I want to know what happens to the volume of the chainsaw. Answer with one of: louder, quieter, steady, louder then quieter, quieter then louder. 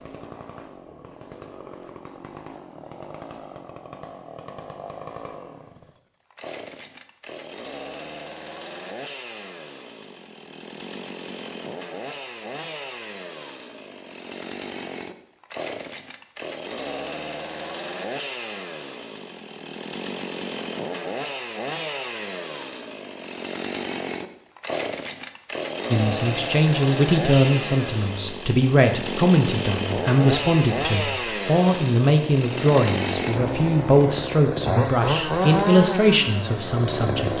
louder.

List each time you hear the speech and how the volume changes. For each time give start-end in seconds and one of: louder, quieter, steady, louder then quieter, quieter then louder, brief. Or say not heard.
25.9-37.3 steady.